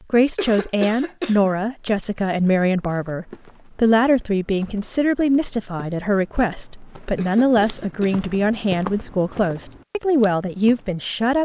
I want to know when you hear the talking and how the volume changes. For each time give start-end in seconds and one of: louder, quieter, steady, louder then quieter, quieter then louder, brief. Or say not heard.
0.1-11.4 steady.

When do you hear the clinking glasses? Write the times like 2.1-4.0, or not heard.
not heard.